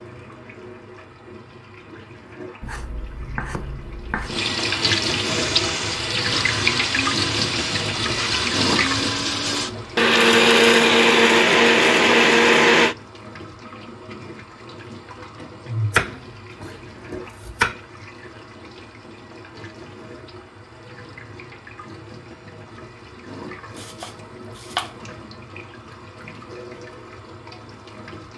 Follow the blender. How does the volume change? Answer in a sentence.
The volume of the blender goes up.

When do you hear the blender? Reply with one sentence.
You can hear the blender from 5.2 to 12.9 s.